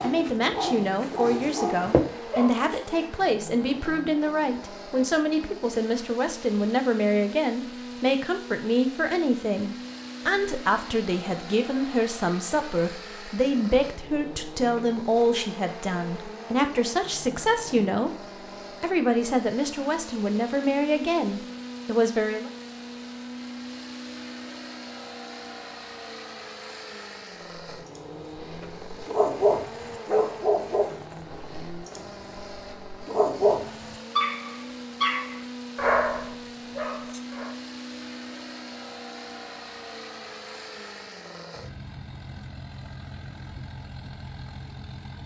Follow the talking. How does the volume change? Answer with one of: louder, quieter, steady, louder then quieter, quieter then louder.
steady.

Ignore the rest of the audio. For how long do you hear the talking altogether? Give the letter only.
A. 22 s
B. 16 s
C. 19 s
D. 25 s
A.